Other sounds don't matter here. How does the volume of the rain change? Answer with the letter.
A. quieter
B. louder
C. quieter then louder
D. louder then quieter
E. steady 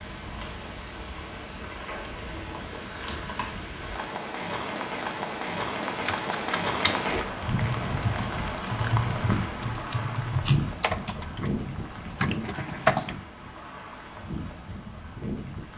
D.